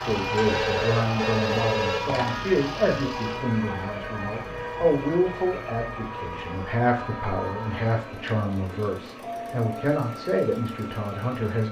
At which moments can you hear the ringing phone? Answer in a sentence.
The ringing phone can be heard from 0.3 to 2.4 s and from 7.2 to 9.1 s.